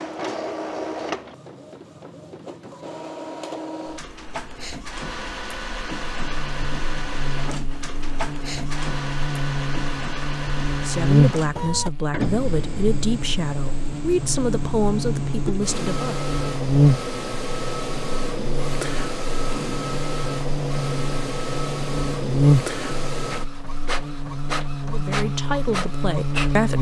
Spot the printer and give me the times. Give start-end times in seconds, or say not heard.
0.0-26.7.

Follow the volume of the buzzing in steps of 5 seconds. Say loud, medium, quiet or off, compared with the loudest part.
off, medium, loud, loud, loud, loud.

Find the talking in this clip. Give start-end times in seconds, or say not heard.
10.8-16.2, 24.9-26.7.